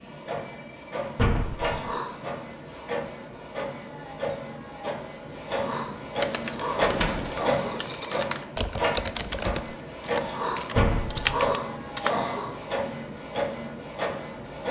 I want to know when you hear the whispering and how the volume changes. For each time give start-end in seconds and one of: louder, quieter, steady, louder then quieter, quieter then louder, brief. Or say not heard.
not heard.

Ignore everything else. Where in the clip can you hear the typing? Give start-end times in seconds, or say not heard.
6.2-12.2.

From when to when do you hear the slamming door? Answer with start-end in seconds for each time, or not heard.
1.1-1.8, 6.8-7.2, 10.8-11.4.